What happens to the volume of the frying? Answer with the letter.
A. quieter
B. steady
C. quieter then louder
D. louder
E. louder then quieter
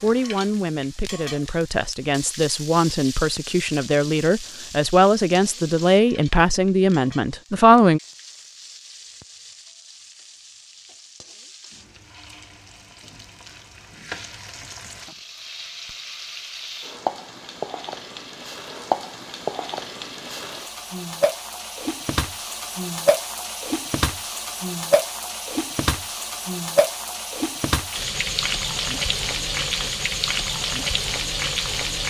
C.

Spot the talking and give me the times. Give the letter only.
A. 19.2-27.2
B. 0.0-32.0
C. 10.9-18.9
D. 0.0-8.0
D.